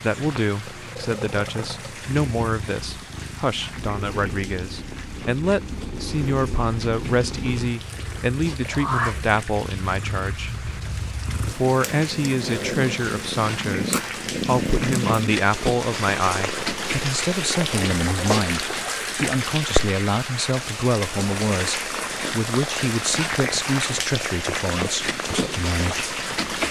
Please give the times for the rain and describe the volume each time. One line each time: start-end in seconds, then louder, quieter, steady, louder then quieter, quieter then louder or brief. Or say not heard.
0.0-26.6 louder.